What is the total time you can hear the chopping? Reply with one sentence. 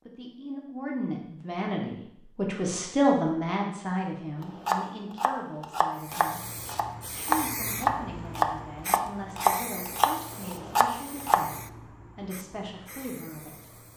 The chopping can be heard for 7 seconds in total.